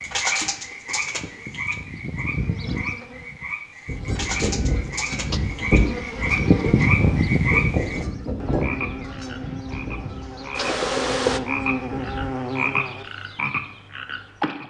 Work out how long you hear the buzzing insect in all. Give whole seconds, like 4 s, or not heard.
10 s.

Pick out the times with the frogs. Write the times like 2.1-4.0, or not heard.
0.0-14.6.